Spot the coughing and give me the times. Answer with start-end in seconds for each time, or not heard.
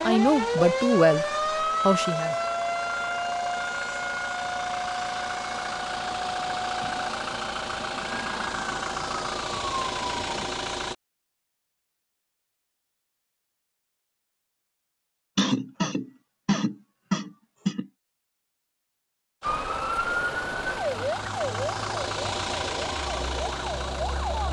0.0-0.8, 15.3-17.9.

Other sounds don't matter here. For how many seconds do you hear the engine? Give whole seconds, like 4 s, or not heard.
16 s.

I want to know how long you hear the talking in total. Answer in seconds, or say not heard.
2 s.